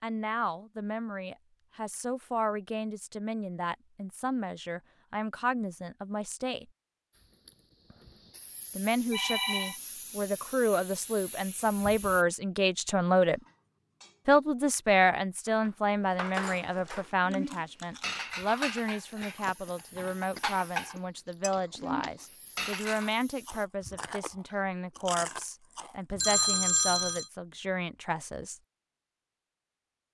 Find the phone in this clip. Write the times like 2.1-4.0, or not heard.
9.1-9.8, 26.2-27.2.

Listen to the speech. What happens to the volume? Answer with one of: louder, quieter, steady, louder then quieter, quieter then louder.
louder then quieter.